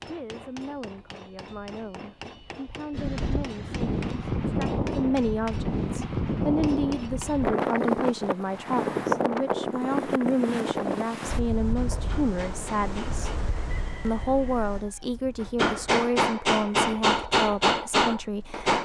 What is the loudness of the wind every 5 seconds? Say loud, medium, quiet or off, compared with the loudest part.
loud, loud, medium, quiet.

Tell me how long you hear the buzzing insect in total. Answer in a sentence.
The buzzing insect can't be heard in this clip.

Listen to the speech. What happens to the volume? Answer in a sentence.
The volume of the speech goes up.